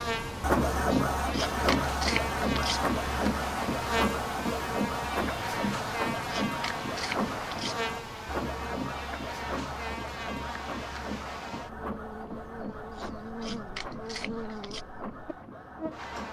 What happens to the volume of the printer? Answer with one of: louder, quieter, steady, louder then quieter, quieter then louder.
quieter.